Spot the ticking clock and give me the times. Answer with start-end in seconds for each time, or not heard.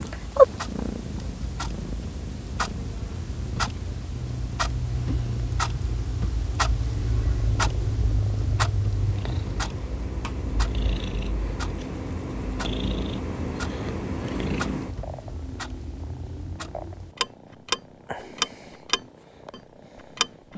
0.1-20.5.